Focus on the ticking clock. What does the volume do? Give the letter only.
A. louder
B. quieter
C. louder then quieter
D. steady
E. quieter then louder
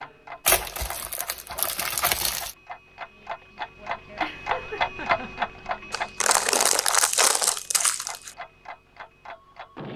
C.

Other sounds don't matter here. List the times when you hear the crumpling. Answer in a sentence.
You can hear the crumpling from 0.5 to 2.5 s and from 5.9 to 8.3 s.